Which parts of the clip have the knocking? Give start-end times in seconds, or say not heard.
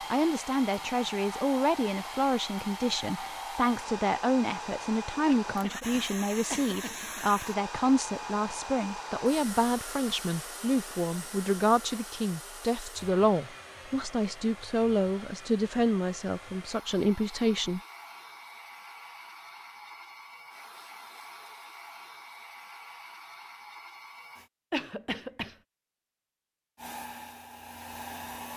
not heard.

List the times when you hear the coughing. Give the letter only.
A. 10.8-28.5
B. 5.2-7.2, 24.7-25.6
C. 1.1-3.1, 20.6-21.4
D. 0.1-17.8
B.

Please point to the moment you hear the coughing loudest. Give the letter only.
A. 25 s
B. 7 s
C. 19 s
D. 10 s
A.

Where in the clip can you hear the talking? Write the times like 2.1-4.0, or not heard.
0.1-17.8.